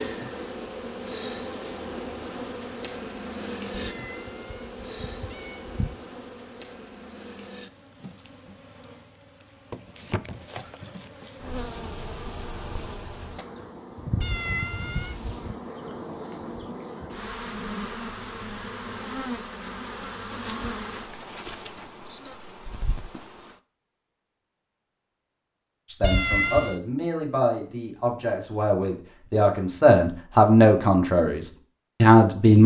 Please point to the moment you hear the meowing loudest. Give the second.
26 s.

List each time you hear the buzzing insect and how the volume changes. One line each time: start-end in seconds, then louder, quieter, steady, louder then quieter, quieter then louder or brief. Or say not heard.
0.0-23.6 quieter then louder.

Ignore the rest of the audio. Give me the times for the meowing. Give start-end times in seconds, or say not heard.
3.7-6.0, 14.2-15.6, 26.0-26.8.